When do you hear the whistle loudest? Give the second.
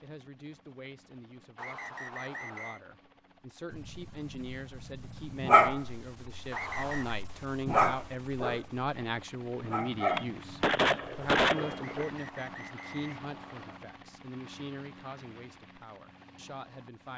7 s.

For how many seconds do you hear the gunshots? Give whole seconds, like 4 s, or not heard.
2 s.